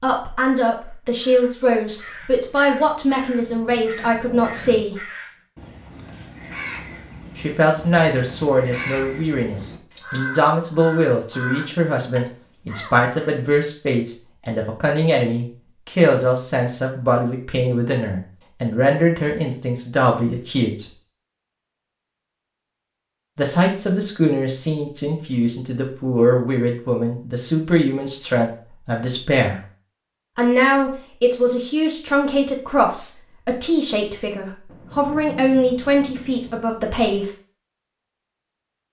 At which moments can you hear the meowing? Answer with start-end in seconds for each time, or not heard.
not heard.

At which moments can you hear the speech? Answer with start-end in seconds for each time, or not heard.
0.0-5.0, 7.3-20.9, 23.4-29.6, 30.4-37.3.